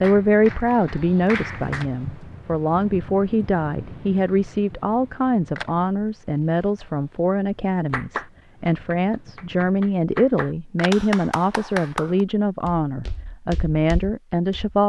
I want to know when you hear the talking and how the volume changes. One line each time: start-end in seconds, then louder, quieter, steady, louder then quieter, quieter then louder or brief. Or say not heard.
0.0-14.8 steady.